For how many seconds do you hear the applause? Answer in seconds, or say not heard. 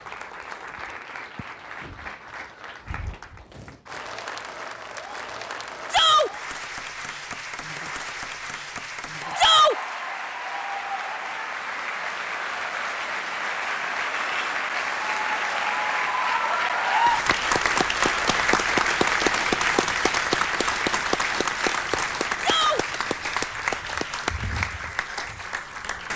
26 s.